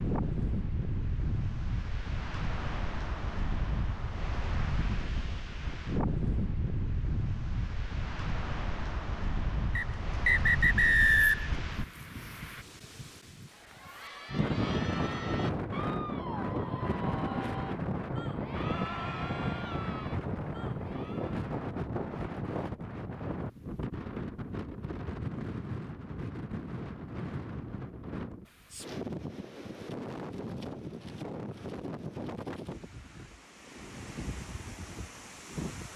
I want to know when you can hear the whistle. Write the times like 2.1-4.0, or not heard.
9.8-11.6.